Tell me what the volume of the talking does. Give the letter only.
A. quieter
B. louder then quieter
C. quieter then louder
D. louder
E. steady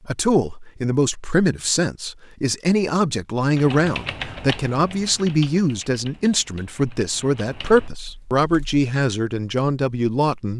E.